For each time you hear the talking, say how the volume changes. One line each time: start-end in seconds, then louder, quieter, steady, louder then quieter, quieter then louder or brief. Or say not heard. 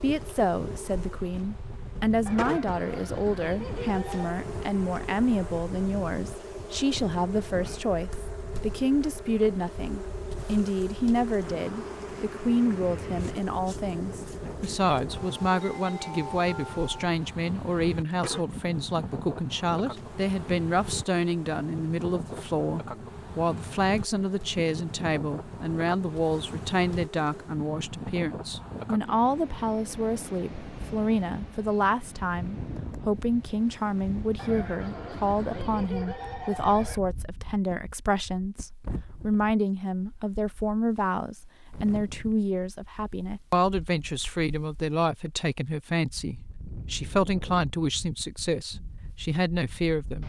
0.0-50.2 steady.